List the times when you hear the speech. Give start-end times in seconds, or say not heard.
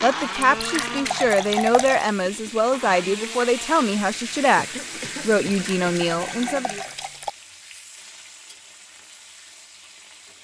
0.0-6.8.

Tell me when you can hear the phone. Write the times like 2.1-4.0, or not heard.
not heard.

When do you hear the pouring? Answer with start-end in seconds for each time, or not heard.
0.4-2.1, 5.5-7.3.